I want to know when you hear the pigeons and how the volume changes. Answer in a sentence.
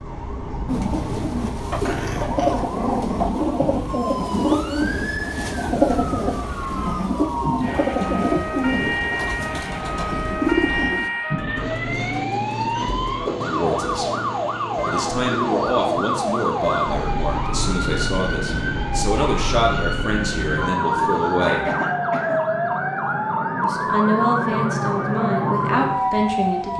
The pigeons can be heard from 0.7 to 11.1 s, at a steady volume.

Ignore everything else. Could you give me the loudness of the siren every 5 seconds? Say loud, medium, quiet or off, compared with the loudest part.
medium, medium, loud, loud, loud, loud.